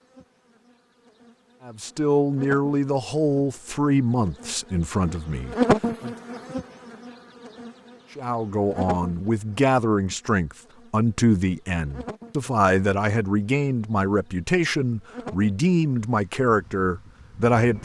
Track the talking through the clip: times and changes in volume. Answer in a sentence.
The talking can be heard from 1.6 to 6.2 s, getting quieter; and from 8.2 to 17.8 s, at a steady volume.